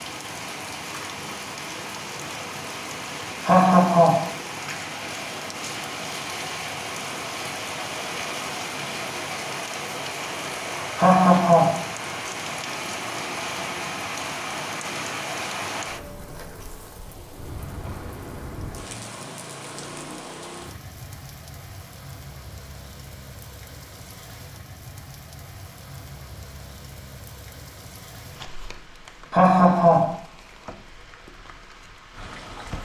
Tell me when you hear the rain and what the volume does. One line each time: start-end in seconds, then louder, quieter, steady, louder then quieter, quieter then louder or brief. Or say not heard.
0.0-32.8 quieter.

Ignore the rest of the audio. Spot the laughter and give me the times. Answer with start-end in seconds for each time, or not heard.
3.5-4.3, 10.9-11.8, 29.3-30.1.